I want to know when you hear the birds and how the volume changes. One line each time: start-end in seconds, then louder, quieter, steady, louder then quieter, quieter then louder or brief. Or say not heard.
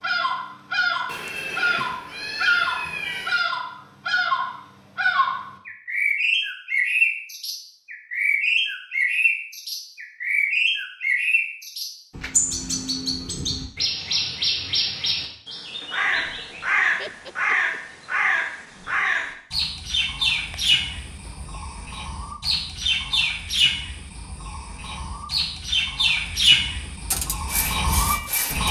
0.0-28.6 steady.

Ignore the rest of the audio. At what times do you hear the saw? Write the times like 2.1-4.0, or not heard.
27.1-28.6.